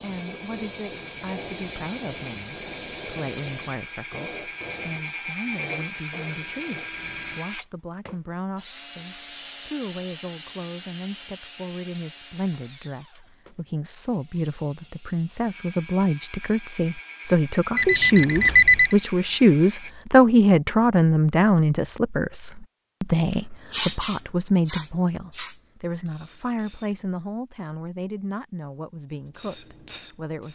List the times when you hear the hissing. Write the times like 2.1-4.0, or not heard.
0.0-7.4, 23.6-26.9, 29.4-30.5.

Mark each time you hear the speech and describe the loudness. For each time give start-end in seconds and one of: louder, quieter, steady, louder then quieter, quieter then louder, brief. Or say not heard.
0.0-30.5 louder then quieter.